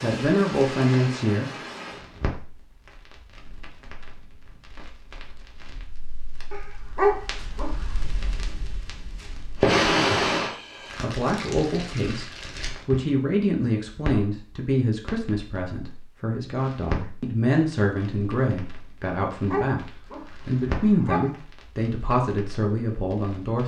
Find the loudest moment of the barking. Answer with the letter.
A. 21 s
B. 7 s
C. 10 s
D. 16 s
B.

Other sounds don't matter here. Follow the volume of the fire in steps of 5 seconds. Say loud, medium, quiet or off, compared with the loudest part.
medium, loud, loud, medium, medium.